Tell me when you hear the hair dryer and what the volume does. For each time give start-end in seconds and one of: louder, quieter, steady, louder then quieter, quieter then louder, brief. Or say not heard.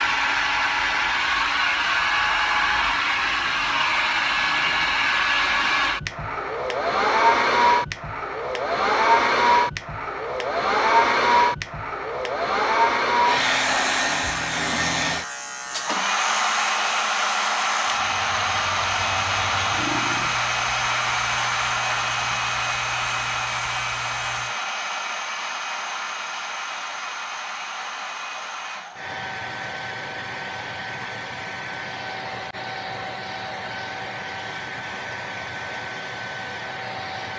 0.0-37.3 quieter.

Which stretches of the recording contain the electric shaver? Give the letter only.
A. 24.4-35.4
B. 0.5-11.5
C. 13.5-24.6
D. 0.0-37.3
C.